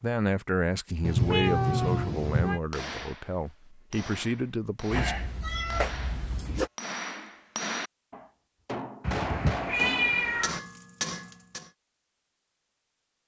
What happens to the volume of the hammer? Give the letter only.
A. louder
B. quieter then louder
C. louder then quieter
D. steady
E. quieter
A.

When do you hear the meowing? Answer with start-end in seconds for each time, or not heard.
1.0-2.6, 4.9-6.7, 9.0-10.6.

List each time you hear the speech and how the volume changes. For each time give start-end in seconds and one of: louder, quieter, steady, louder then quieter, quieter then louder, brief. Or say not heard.
0.0-5.2 quieter then louder.